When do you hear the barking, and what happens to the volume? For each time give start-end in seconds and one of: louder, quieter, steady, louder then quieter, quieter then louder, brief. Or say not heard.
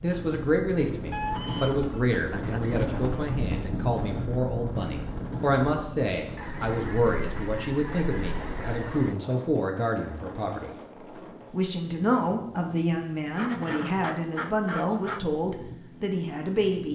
not heard.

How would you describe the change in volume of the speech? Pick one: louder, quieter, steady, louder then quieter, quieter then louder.
steady.